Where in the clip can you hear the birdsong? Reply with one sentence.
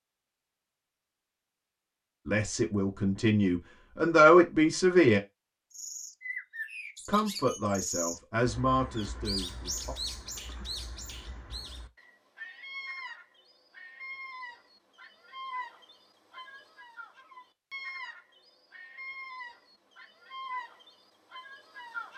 You can hear the birdsong from 5.7 to 22.1 s.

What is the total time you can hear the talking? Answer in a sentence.
You can hear the talking for 6 seconds altogether.